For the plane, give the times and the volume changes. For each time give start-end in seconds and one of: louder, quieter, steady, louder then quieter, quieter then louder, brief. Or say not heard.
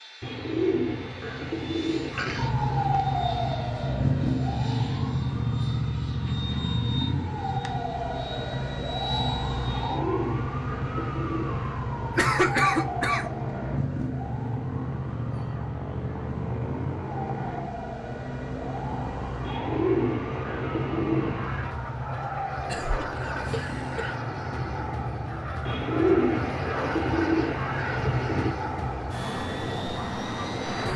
0.0-30.9 louder.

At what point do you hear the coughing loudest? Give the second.
13 s.